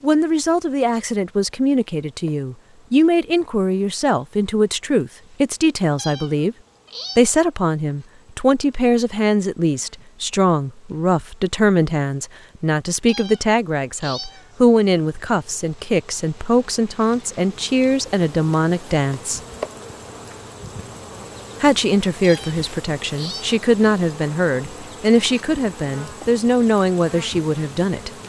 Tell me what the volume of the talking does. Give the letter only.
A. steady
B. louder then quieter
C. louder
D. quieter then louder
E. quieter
A.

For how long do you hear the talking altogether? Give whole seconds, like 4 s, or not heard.
25 s.